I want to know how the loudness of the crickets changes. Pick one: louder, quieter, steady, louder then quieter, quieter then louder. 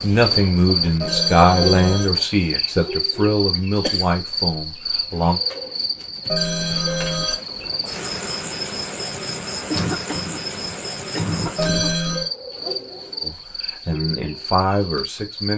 quieter.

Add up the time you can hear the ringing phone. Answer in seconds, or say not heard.
3 s.